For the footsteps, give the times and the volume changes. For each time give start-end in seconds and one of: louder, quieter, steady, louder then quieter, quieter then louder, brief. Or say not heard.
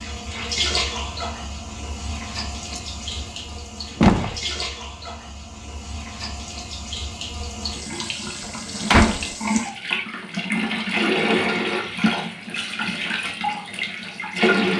not heard.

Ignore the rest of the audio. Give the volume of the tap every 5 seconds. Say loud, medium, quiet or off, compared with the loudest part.
medium, medium, loud.